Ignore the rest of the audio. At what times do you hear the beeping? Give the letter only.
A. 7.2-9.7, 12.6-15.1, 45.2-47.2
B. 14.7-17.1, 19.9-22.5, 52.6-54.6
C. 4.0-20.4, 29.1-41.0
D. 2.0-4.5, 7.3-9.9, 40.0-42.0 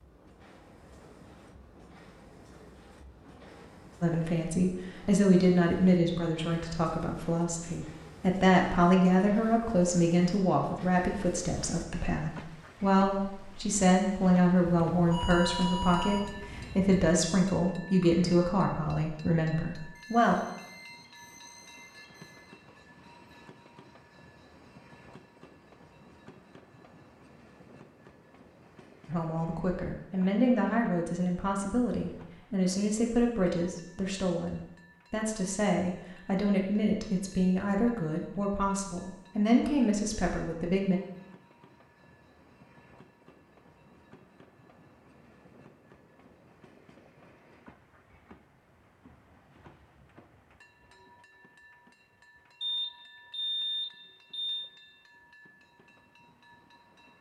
B.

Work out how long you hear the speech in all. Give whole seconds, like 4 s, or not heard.
28 s.